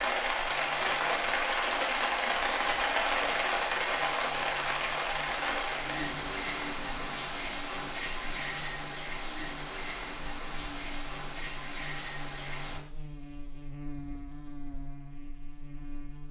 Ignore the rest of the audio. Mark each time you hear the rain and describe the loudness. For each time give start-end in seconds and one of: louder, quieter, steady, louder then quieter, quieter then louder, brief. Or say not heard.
0.0-12.8 quieter.